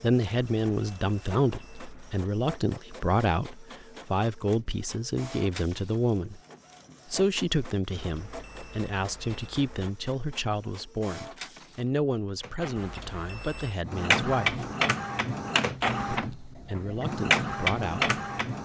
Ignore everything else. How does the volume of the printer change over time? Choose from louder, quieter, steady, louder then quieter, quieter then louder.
louder.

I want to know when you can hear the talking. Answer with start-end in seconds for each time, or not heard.
0.0-6.4, 7.1-14.7, 16.1-18.6.